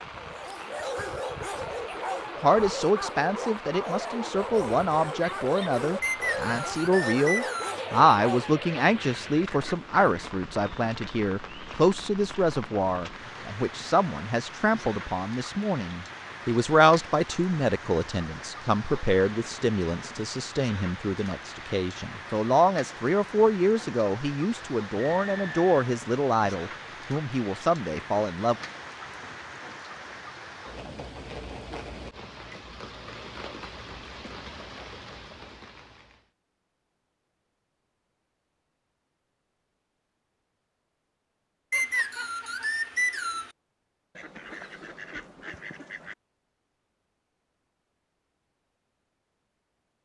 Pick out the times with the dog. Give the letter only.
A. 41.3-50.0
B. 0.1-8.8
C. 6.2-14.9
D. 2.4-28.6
B.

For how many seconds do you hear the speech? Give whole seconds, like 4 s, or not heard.
26 s.